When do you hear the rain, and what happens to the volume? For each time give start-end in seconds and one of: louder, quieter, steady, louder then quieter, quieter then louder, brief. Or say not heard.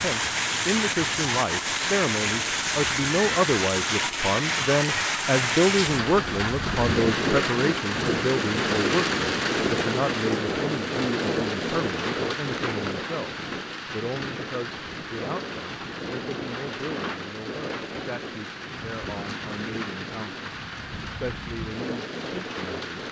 0.0-23.0 quieter.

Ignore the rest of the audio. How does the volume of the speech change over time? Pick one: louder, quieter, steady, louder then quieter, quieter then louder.
quieter.